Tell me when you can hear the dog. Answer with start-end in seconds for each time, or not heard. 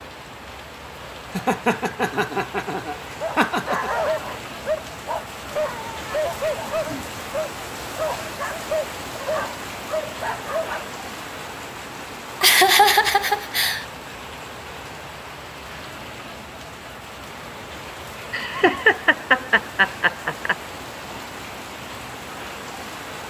3.2-10.9.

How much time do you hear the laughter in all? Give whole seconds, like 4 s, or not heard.
6 s.